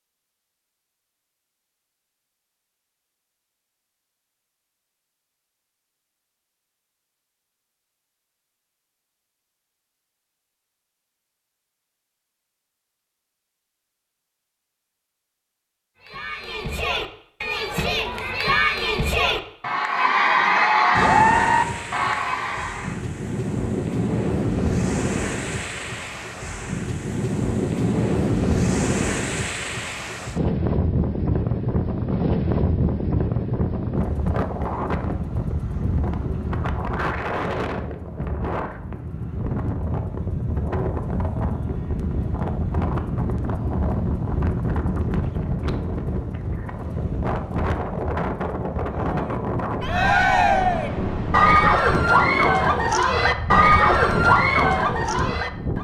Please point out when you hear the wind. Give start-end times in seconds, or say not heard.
20.9-55.8.